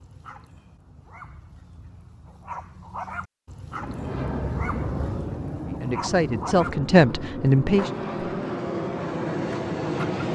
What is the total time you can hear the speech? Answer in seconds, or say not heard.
2 s.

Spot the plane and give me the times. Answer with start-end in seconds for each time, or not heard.
3.7-10.3.